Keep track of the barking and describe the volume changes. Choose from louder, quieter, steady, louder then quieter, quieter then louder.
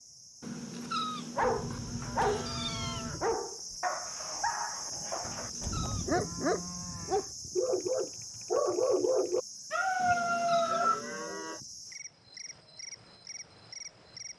quieter then louder.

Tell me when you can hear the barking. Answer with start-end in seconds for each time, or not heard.
1.4-11.0.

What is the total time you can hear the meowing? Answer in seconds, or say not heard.
5 s.